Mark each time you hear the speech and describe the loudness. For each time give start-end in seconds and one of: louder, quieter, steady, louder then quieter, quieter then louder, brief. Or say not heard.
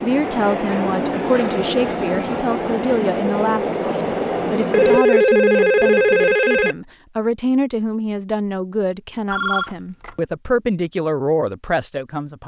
0.0-12.4 steady.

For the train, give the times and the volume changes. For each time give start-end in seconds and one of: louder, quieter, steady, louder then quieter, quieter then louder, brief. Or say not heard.
0.0-5.0 steady.